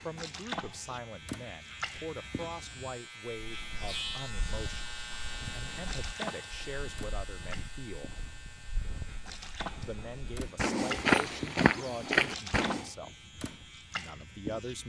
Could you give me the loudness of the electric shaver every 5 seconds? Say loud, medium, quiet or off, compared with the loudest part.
loud, loud, medium.